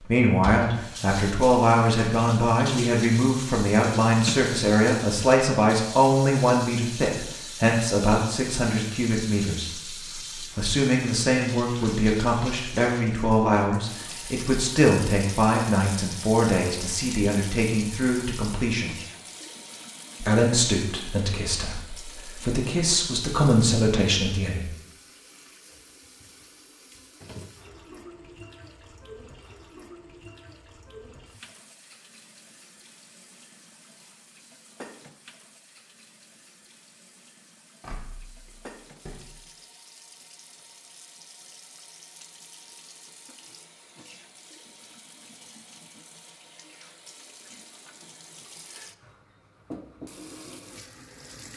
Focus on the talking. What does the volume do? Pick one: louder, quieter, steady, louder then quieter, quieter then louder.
steady.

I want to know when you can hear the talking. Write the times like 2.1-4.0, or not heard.
0.0-18.9, 20.2-24.6.